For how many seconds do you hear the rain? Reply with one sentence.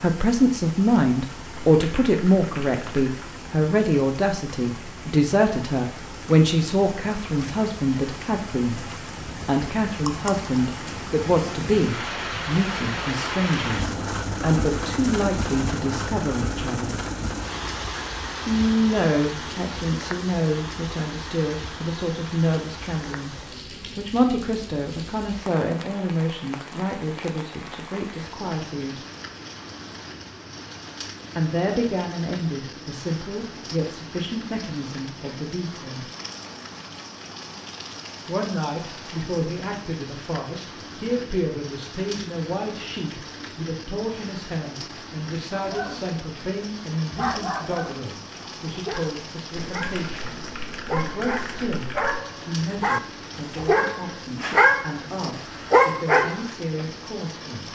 You can hear the rain for 58 seconds altogether.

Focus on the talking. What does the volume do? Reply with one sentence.
The volume of the talking goes down.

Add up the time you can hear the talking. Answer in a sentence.
You can hear the talking for 51 seconds altogether.